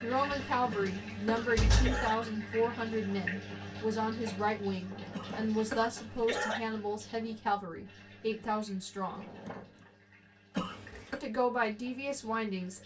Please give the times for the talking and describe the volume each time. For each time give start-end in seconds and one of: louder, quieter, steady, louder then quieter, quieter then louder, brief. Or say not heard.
0.0-9.2 steady
11.2-12.8 brief.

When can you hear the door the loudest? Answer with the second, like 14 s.
2 s.